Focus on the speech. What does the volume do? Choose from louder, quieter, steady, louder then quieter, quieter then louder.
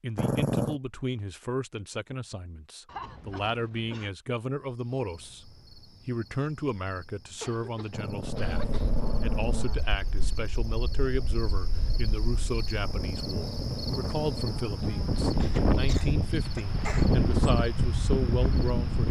steady.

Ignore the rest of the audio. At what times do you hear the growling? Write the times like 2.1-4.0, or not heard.
0.1-0.8, 7.9-9.8, 12.8-15.2.